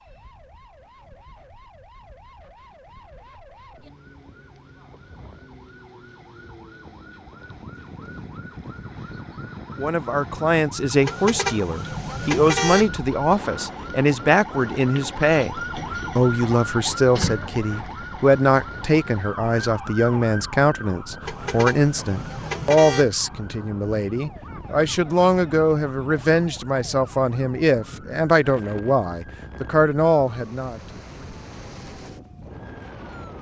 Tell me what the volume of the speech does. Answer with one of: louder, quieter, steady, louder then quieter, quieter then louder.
steady.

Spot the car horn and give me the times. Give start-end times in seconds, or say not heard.
11.1-12.9, 21.2-23.1.